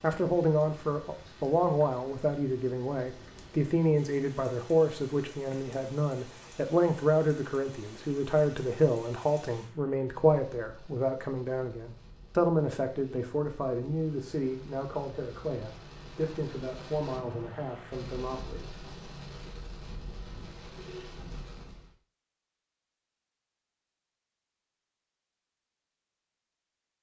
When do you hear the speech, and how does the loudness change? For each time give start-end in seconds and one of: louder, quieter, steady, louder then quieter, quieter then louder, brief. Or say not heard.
0.0-18.7 quieter.